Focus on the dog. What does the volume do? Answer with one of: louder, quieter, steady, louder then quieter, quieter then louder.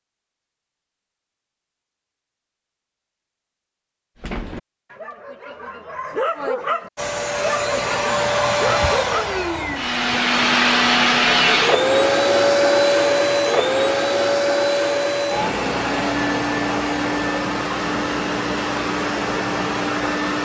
louder.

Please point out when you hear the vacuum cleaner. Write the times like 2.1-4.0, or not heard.
7.0-20.4.